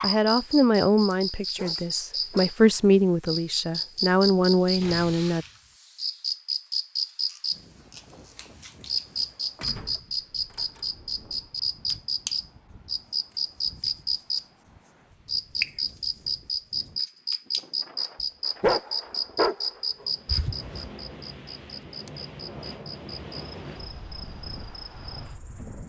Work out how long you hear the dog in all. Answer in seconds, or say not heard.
2 s.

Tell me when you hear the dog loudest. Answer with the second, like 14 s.
19 s.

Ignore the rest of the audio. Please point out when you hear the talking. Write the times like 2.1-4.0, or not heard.
0.0-5.5.